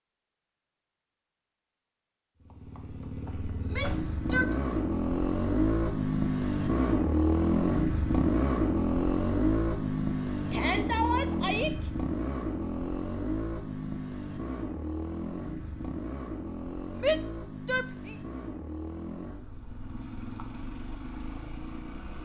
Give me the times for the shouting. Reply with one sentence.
You can hear the shouting from 3.6 to 4.5 s, from 10.5 to 11.8 s and from 17.0 to 18.1 s.